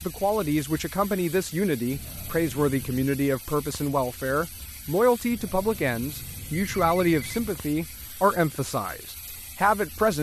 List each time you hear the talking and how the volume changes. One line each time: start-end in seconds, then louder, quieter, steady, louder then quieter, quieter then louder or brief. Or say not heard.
0.0-10.1 steady.